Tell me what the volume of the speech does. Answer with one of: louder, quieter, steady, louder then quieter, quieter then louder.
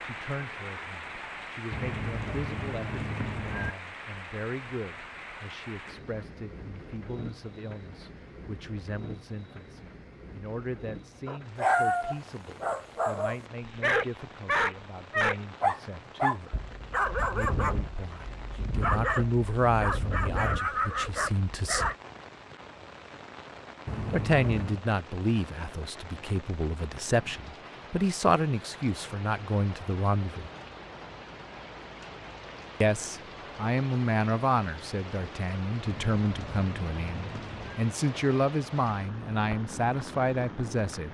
louder.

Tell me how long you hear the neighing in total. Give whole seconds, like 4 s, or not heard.
5 s.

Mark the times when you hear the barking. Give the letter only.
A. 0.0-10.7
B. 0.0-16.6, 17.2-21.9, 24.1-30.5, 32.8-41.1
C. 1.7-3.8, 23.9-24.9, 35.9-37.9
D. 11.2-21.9
D.